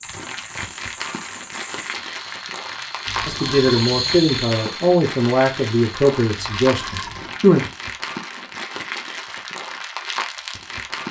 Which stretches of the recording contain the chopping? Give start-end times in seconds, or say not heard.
not heard.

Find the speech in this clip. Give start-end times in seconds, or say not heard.
3.2-7.7.